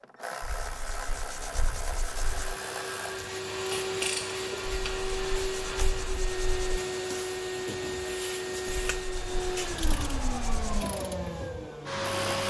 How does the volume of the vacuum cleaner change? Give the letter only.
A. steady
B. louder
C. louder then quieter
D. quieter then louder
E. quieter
A.